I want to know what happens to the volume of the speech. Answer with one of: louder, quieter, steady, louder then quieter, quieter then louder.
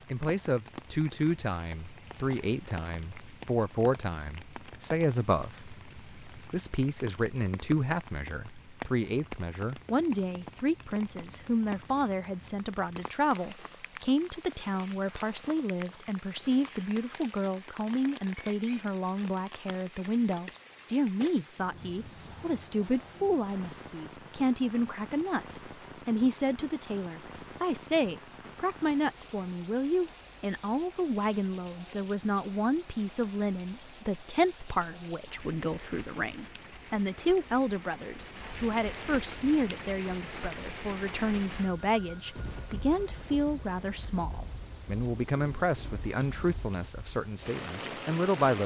steady.